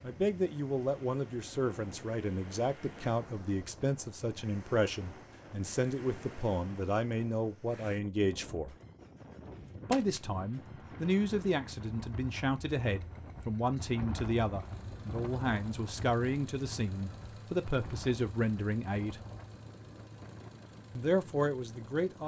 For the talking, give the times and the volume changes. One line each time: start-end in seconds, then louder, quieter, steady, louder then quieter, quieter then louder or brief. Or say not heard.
0.0-8.8 steady
9.8-19.2 steady
20.9-22.2 brief.